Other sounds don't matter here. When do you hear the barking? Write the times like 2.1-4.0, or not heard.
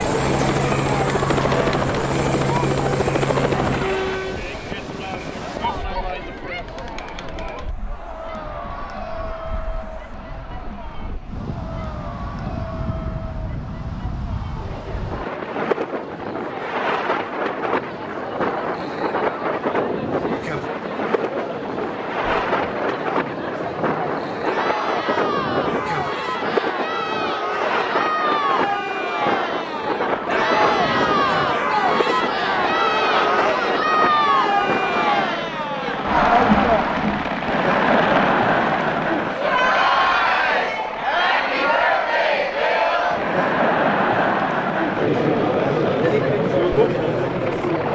not heard.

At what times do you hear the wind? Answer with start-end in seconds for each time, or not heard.
0.0-35.2.